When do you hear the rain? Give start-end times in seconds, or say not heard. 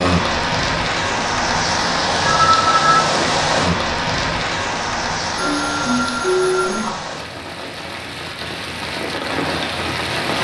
0.0-10.3.